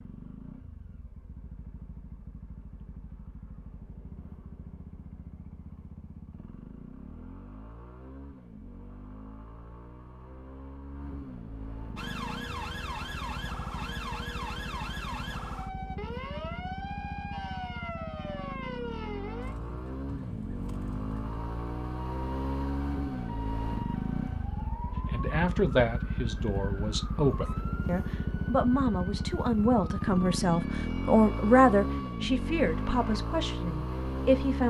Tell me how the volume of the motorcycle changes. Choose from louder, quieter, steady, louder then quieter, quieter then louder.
louder.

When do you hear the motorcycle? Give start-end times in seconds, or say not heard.
0.0-34.6.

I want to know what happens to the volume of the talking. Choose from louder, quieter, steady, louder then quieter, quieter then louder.
louder then quieter.